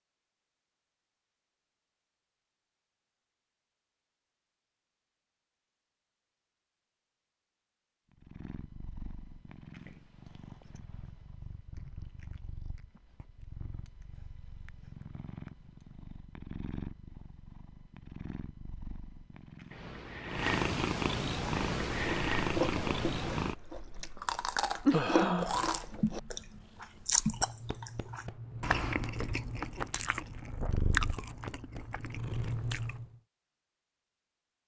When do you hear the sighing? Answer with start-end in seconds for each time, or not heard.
24.9-25.6.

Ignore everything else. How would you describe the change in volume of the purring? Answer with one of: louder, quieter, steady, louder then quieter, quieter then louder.
louder then quieter.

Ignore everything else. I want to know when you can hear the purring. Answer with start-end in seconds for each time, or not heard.
8.1-33.0.